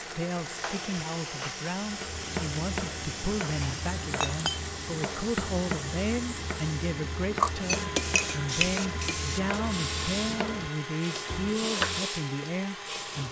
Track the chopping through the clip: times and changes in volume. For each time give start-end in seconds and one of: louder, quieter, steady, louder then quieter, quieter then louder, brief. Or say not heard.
1.9-12.1 steady.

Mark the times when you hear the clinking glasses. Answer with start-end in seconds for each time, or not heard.
4.2-4.7, 7.7-9.2.